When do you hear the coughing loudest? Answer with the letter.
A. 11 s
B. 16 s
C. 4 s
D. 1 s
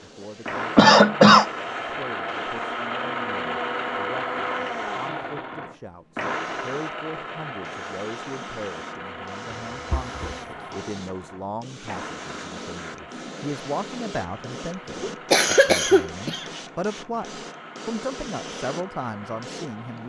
D.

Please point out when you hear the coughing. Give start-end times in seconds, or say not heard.
0.8-1.4, 9.7-10.7, 15.0-16.4.